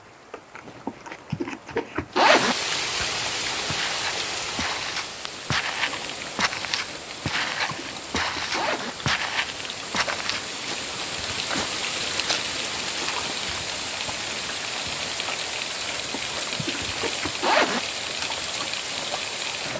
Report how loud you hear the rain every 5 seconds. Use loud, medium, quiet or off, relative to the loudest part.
loud, medium, loud, loud.